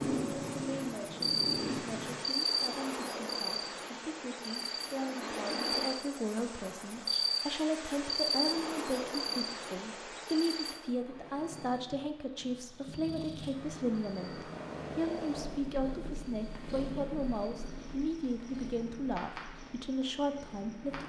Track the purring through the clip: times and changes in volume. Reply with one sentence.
The purring can be heard briefly from 0.0 to 2.2 s; and from 10.9 to 21.0 s, getting louder then quieter.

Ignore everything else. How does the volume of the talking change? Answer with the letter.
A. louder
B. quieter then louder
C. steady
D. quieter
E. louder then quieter
A.